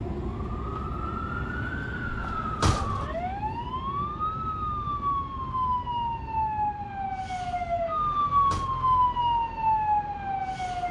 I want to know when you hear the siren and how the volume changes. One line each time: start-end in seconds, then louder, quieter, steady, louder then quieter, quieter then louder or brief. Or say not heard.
0.2-10.8 louder.